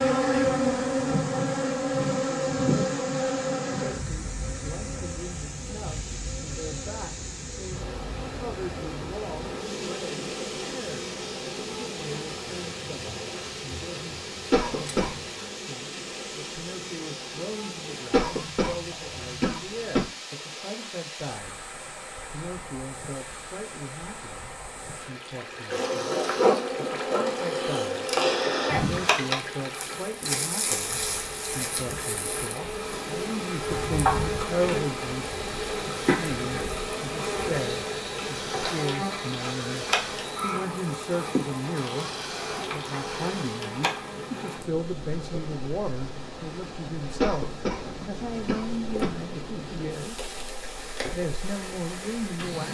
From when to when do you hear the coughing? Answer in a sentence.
You can hear the coughing from 14.5 to 15.2 s, from 18.1 to 20.1 s and from 47.2 to 49.1 s.